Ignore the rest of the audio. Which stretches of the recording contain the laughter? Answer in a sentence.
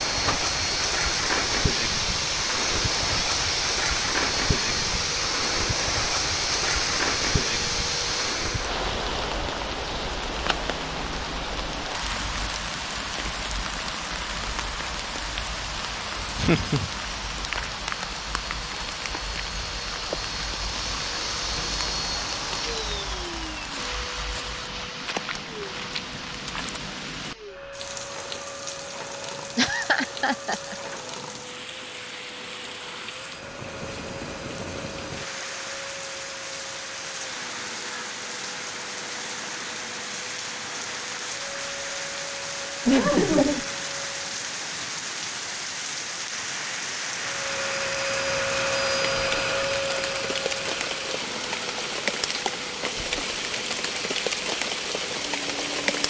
You can hear the laughter from 16.4 to 16.9 s, from 29.6 to 30.8 s and from 42.9 to 43.6 s.